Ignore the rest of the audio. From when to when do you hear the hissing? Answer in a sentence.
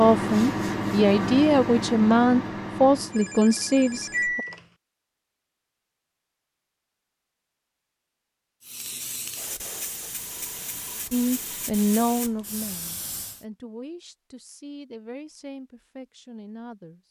You can hear the hissing from 8.6 to 13.4 s.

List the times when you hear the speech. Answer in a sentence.
The speech can be heard from 0.0 to 4.4 s and from 11.1 to 17.0 s.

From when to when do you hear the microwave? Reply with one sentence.
You can hear the microwave from 0.0 to 4.5 s.